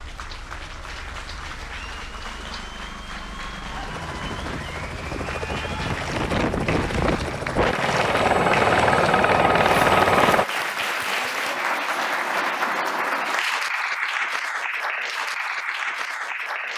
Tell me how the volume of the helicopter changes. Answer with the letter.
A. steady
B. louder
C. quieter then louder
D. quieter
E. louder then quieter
B.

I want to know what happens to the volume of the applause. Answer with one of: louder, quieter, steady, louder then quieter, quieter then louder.
louder.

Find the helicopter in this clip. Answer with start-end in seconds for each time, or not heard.
0.0-10.4.